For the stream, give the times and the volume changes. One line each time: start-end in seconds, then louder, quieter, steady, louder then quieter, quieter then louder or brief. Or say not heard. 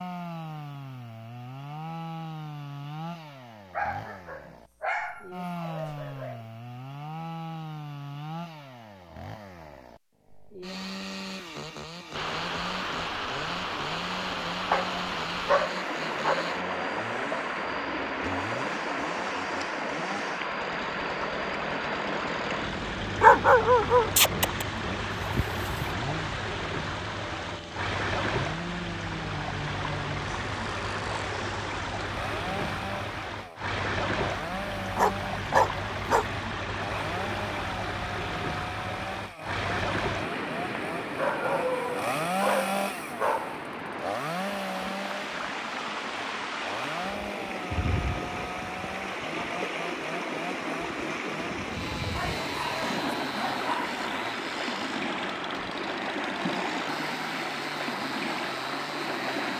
12.1-59.5 steady.